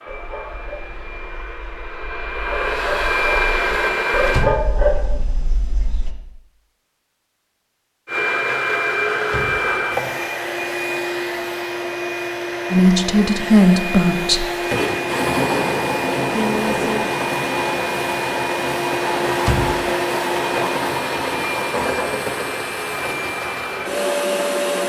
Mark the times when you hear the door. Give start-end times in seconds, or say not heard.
4.2-5.2, 9.2-10.2, 19.4-19.9.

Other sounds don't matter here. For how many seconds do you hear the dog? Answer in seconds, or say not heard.
6 s.